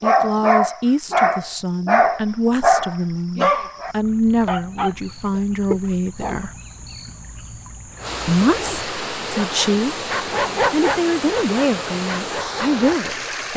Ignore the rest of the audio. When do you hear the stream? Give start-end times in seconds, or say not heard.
2.2-13.5.